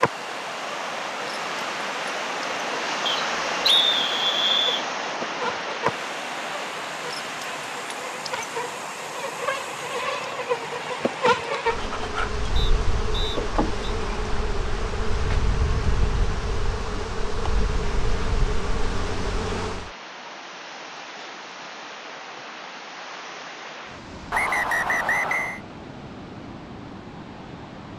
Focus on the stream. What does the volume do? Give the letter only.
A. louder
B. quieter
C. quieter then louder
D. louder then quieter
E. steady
B.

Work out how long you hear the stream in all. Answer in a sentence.
You can hear the stream for 28 seconds altogether.